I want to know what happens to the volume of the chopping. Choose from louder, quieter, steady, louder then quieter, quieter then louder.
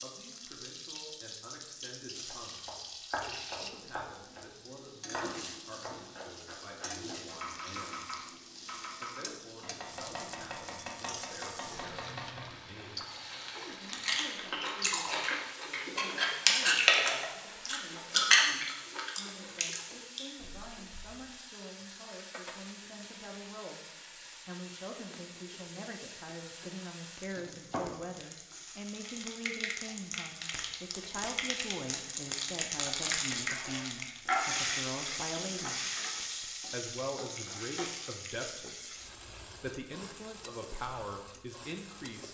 steady.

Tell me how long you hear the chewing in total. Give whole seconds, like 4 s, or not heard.
7 s.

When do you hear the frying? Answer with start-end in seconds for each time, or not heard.
0.0-42.2.